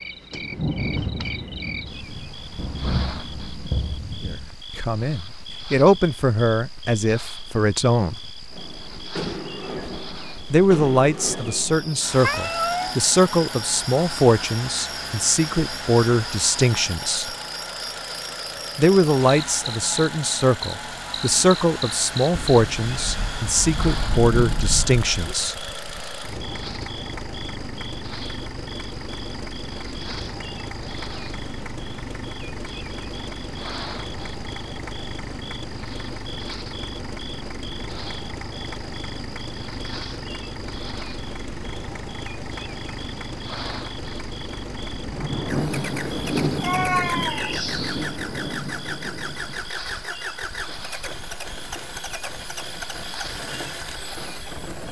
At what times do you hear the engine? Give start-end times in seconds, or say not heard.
8.5-54.8.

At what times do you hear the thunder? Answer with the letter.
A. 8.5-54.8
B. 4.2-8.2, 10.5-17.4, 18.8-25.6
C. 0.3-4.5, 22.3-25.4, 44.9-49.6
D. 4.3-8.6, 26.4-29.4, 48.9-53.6
C.